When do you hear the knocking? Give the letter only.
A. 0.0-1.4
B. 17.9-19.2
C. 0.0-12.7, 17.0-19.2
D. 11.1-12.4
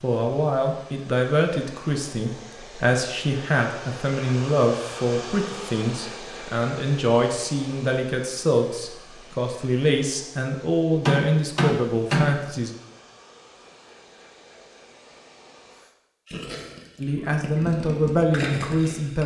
D.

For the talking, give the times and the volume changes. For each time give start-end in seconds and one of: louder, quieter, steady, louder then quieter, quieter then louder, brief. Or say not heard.
0.0-12.7 steady
17.0-19.2 brief.